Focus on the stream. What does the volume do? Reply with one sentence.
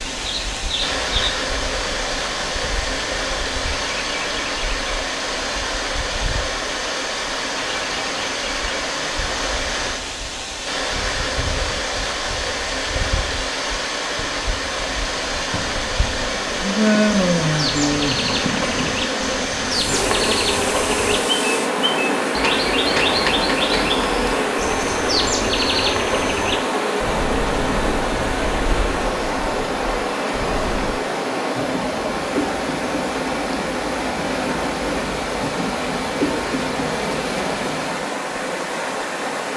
The loudness of the stream stays about the same.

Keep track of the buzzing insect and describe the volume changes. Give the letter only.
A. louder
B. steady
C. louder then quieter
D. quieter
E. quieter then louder
D.